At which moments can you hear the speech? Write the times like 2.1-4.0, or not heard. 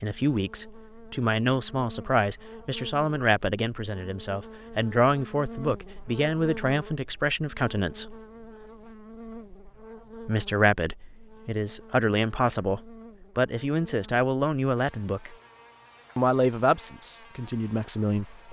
0.0-8.2, 10.2-15.3, 16.1-18.4.